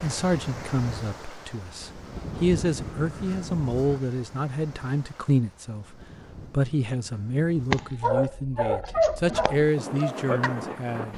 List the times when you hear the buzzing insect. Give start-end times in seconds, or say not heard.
not heard.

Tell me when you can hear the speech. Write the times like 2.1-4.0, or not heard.
0.0-11.1.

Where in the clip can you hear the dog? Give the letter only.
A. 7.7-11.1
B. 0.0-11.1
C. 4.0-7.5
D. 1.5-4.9
A.